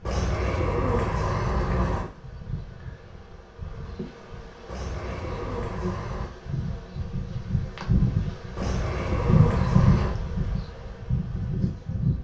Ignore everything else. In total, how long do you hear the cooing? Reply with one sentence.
You can hear the cooing for 5 seconds altogether.